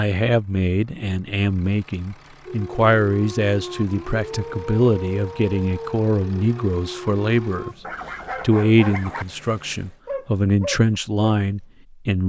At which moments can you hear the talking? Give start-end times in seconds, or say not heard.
0.0-7.8, 8.4-12.2.